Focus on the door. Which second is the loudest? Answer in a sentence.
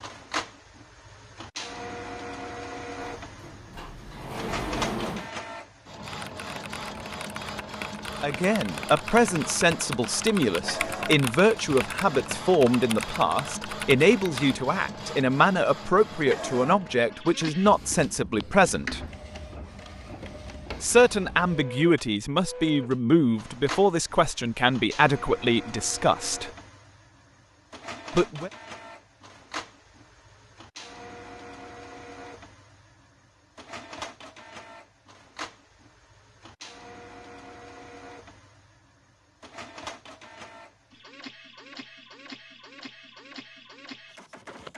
The loudest moment of the door is at 5 seconds.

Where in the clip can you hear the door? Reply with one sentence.
You can hear the door from 3.0 to 5.3 s.